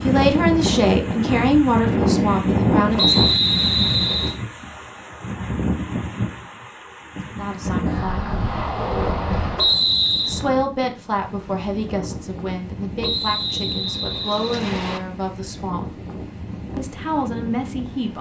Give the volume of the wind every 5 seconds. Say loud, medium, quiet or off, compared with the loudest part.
loud, medium, quiet, quiet.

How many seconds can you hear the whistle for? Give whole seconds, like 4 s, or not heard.
4 s.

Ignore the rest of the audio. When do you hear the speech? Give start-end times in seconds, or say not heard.
0.0-3.1, 7.3-8.2, 10.2-15.8, 16.8-18.1.